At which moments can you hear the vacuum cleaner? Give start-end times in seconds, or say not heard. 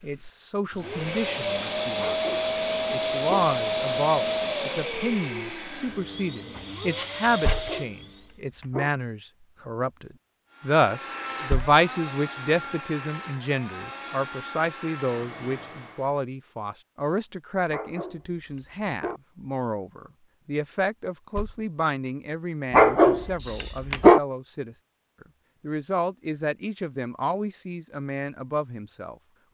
0.0-8.3, 10.5-16.1.